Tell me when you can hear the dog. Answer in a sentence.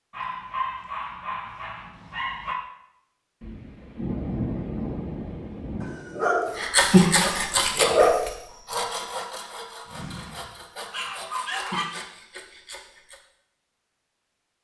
The dog can be heard from 0.1 to 2.6 s, from 5.8 to 8.2 s and from 9.8 to 11.8 s.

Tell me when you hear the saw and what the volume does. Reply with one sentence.
You can hear the saw from 6.5 to 13.2 s, getting quieter.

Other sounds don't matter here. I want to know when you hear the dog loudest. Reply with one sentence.
The loudest moment of the dog is at 8 seconds.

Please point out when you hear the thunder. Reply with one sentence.
You can hear the thunder from 3.4 to 6.0 s.